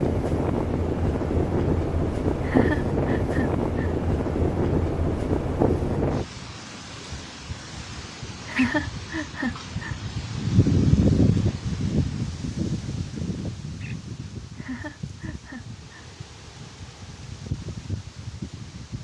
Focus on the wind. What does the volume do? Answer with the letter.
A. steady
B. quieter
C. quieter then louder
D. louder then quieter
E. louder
B.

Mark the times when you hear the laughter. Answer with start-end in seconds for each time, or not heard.
2.4-4.0, 8.4-9.9, 14.6-16.1.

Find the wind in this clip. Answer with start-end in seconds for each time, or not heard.
0.0-18.9.